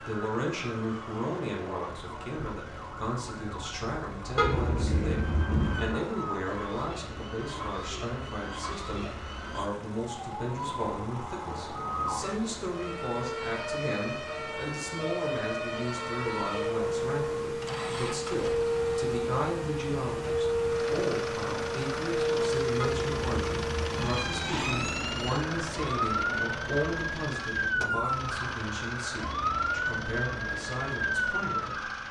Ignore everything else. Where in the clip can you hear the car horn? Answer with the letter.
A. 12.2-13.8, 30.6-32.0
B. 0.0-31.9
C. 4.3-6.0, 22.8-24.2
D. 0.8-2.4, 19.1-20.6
C.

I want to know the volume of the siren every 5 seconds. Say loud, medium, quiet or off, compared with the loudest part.
quiet, medium, medium, loud, loud, loud, loud.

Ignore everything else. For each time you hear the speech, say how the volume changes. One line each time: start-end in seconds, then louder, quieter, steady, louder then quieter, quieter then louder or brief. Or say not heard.
0.0-31.9 steady.